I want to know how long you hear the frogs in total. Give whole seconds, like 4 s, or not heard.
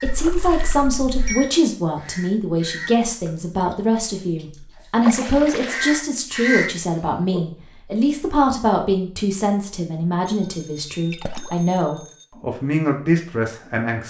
not heard.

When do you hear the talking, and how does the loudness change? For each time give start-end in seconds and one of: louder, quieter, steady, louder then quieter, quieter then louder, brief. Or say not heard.
0.0-14.0 steady.